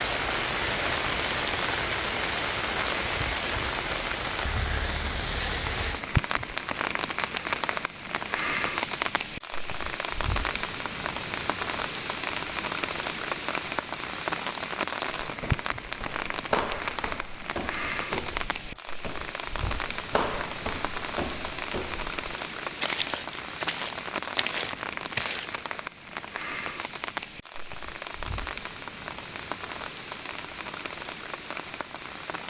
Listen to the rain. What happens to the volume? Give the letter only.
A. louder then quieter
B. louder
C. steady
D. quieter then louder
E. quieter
E.